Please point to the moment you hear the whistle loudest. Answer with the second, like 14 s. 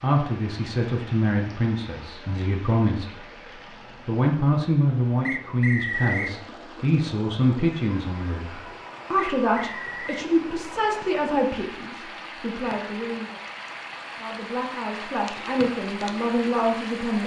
6 s.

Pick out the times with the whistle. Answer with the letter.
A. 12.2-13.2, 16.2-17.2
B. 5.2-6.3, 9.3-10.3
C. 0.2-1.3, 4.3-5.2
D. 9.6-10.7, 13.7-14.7
B.